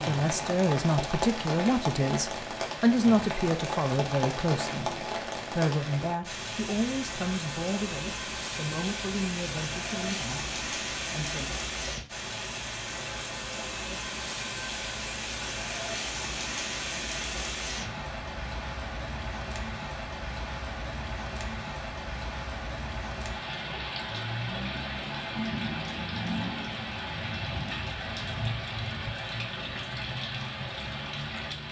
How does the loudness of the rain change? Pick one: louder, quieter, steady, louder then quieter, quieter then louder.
steady.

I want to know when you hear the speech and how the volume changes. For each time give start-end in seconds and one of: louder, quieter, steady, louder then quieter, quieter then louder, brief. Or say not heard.
0.0-11.5 quieter.